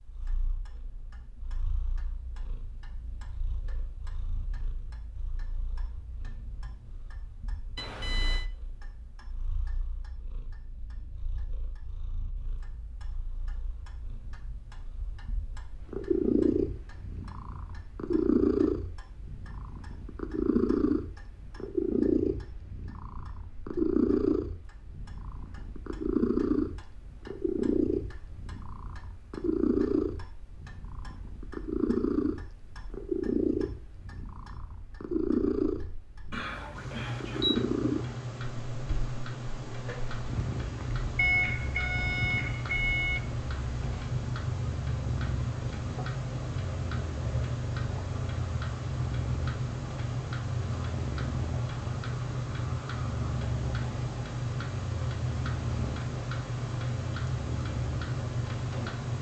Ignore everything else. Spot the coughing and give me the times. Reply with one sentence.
The coughing can't be heard in this clip.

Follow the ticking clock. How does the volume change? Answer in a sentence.
The loudness of the ticking clock goes up.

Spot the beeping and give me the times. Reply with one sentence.
The beeping can be heard from 7.8 to 8.4 s, from 36.3 to 37.6 s and from 41.1 to 43.2 s.